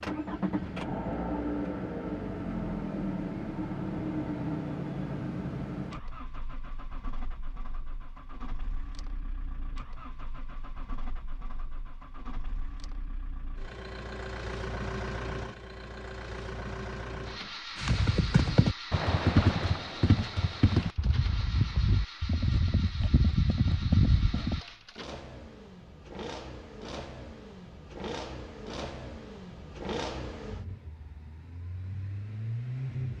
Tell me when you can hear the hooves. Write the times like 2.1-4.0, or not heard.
17.8-24.6.